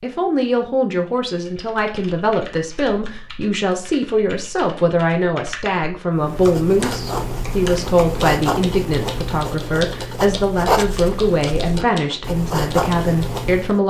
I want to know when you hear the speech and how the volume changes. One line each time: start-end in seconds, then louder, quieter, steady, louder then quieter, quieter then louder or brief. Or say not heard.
0.0-13.8 steady.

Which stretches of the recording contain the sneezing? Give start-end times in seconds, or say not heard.
not heard.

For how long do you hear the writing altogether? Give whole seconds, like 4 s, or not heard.
8 s.